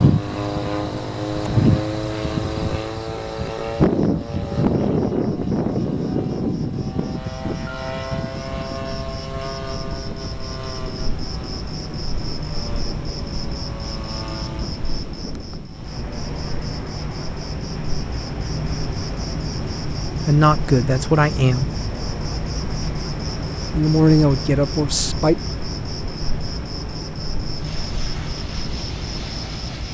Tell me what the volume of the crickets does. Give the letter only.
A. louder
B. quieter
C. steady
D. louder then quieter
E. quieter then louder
A.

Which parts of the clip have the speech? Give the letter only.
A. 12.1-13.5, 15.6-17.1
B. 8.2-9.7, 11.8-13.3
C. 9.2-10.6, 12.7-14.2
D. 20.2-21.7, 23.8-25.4
D.